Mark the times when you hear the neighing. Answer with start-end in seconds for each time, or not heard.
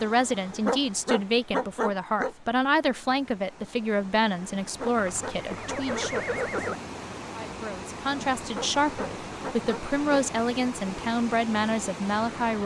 5.0-6.8.